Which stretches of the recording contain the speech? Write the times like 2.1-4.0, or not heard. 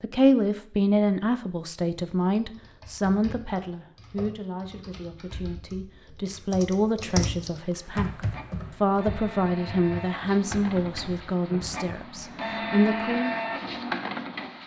0.0-13.3.